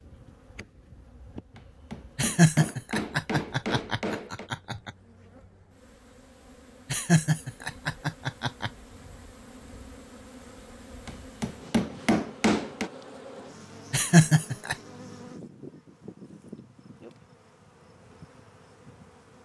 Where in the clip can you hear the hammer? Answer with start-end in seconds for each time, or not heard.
1.6-4.5, 11.1-12.9.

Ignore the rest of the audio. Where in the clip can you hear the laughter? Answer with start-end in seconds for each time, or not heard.
2.1-4.9, 6.9-8.7, 13.9-14.8.